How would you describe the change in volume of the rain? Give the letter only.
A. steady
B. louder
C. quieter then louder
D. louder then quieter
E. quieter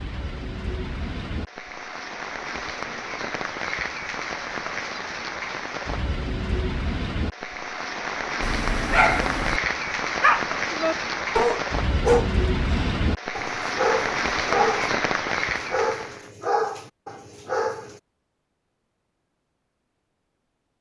B.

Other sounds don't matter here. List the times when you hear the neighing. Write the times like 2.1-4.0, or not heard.
not heard.